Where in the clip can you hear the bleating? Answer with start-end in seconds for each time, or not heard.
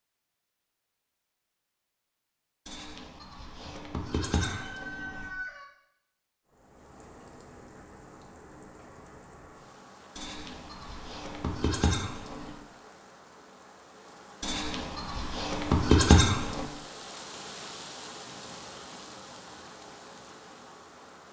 2.6-5.3, 10.2-12.6, 14.4-16.7.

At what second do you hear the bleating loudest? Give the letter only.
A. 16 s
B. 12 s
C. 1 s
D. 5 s
A.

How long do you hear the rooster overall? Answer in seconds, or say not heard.
2 s.